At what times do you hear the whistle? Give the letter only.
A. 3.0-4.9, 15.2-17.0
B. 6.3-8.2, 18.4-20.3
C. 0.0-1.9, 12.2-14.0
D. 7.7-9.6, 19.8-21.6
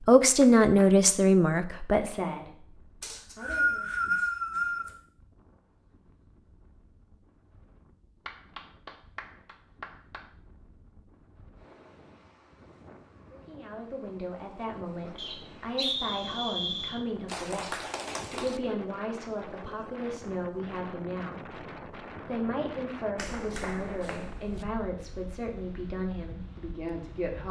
A.